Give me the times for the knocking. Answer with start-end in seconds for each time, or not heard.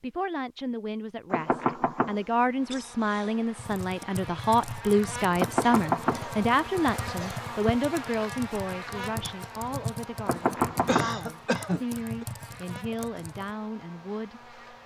1.3-2.2, 5.3-6.3, 10.2-11.2.